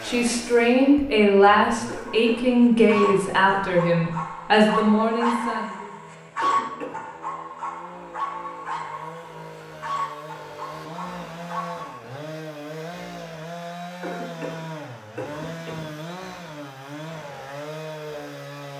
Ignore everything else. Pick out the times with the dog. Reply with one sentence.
The dog can be heard from 2.0 to 12.0 s.